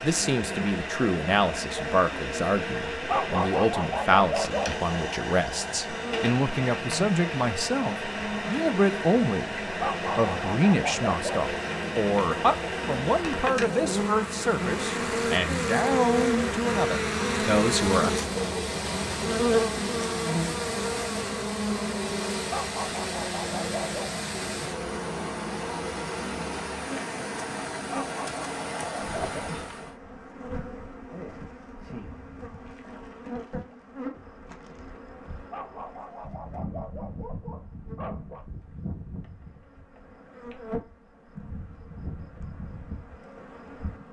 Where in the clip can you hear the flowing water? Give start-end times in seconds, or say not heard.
0.0-29.9.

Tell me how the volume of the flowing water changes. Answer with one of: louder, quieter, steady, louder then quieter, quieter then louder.
steady.